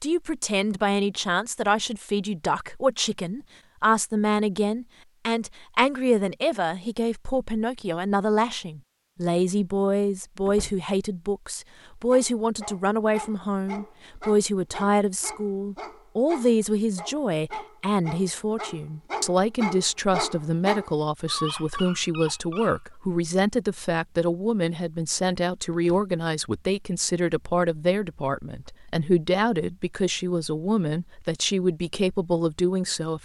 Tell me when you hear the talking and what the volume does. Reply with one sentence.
You can hear the talking from 0.0 to 33.1 s, at a steady volume.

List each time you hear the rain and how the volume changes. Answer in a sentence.
You can't hear the rain here.